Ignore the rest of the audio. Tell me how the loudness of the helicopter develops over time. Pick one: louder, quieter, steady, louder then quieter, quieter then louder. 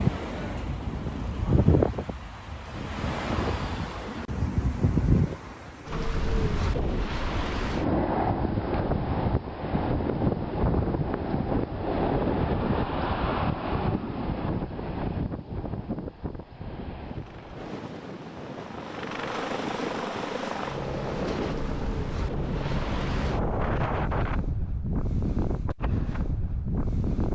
louder.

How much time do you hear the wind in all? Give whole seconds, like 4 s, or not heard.
27 s.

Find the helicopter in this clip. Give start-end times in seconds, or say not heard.
17.0-23.4.